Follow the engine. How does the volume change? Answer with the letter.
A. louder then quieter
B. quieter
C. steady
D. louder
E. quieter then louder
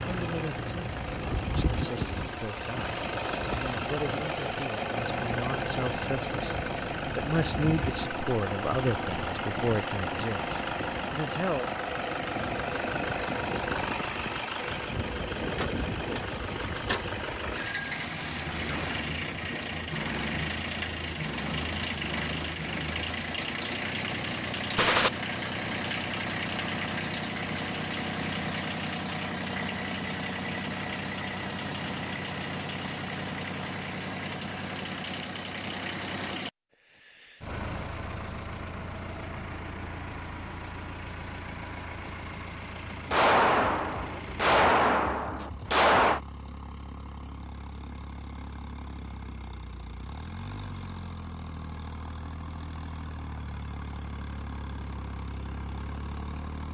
B.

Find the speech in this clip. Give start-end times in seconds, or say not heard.
0.0-11.7.